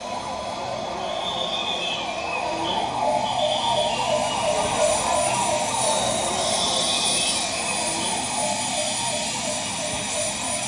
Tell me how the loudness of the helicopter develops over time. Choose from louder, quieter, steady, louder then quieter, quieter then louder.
louder.